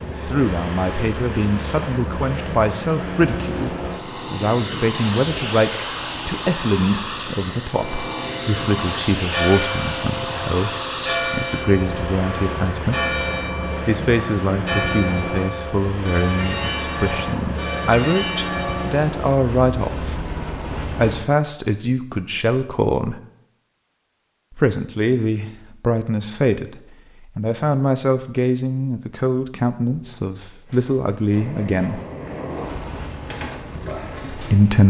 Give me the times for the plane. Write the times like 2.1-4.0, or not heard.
0.0-21.2, 31.3-34.8.